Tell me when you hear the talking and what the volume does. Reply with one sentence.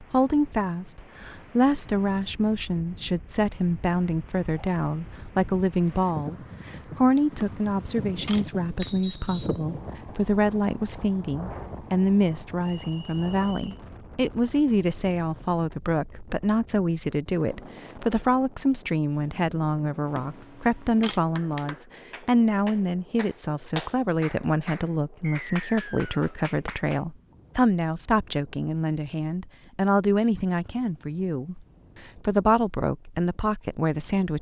You can hear the talking from 0.0 to 34.3 s, at a steady volume.